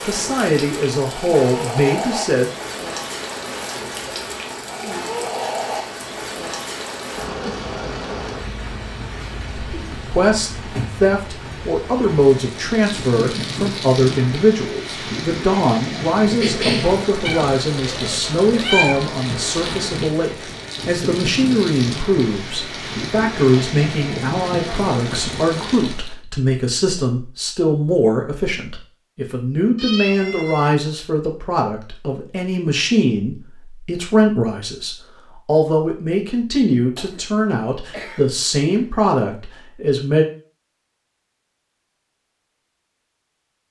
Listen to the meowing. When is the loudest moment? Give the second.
19 s.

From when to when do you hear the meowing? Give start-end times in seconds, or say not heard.
17.2-19.1, 29.8-30.8.